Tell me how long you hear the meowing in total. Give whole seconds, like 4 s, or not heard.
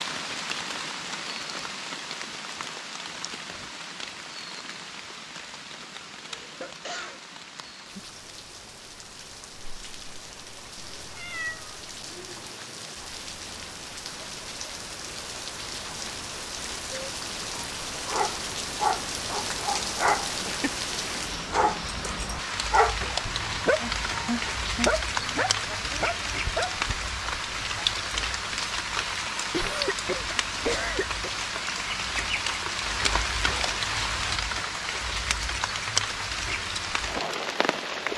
2 s.